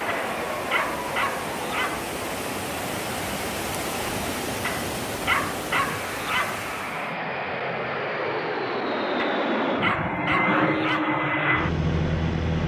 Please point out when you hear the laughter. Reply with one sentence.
The laughter can't be heard in this clip.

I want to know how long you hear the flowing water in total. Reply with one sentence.
The flowing water can be heard for 7 seconds in total.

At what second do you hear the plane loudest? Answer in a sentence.
The loudest moment of the plane is at 11 seconds.